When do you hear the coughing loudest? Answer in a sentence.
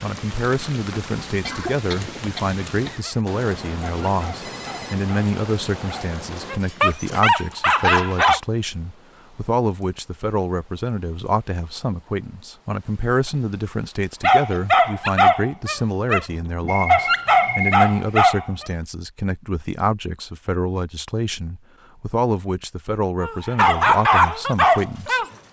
The loudest moment of the coughing is at 2 seconds.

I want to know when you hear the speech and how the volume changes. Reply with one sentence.
The speech can be heard from 0.0 to 25.2 s, at a steady volume.